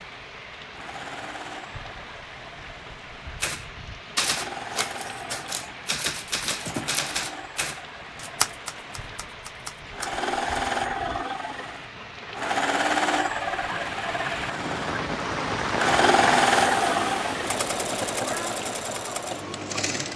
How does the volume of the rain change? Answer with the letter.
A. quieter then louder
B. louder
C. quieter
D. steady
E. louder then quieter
B.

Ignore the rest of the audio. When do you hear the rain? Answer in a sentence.
You can hear the rain from 0.0 to 20.1 s.